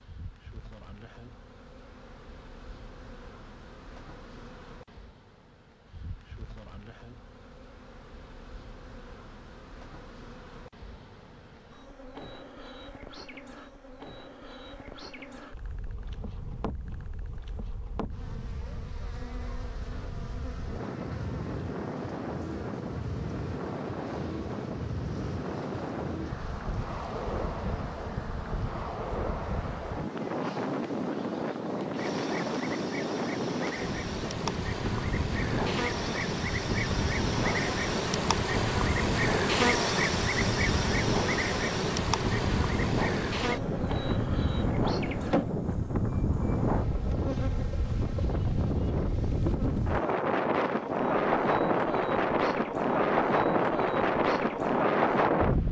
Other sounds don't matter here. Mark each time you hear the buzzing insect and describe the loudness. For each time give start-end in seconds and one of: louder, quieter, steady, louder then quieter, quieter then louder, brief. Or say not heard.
0.0-55.6 louder then quieter.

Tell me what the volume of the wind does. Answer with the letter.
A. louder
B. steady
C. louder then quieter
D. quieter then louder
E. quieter
A.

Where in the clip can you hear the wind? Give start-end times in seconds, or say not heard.
15.5-55.6.